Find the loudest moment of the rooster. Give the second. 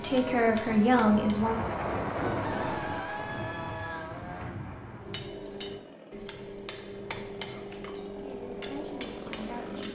3 s.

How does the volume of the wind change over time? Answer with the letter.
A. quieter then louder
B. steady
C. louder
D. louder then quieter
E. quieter
D.